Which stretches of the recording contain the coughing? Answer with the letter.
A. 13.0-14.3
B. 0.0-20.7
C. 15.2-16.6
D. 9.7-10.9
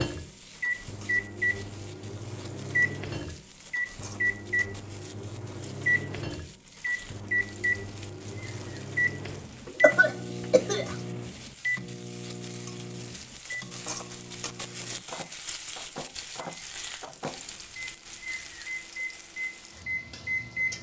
D.